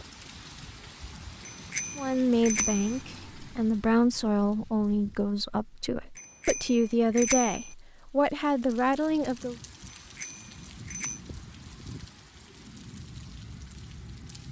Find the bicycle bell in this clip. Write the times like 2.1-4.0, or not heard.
1.4-3.0, 6.2-7.7, 9.9-11.2.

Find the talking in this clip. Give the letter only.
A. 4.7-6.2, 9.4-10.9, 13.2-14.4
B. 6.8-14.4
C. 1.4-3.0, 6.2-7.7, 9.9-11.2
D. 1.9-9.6
D.